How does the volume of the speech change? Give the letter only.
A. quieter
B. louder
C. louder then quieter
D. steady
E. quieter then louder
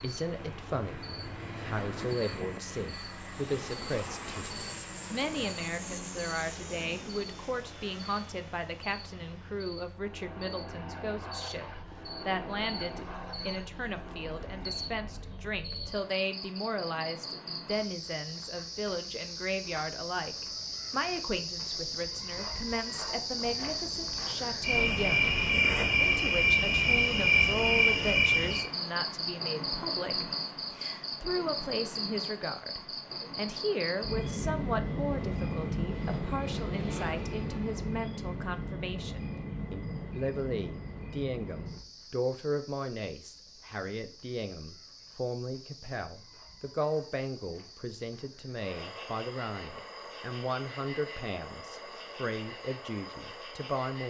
D.